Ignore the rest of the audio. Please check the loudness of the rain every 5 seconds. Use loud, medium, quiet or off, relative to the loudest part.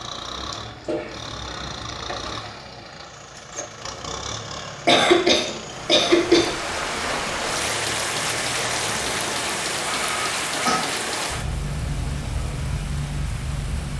off, loud, loud.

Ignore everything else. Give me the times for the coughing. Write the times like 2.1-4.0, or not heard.
0.3-2.4, 4.8-6.5, 9.9-10.8.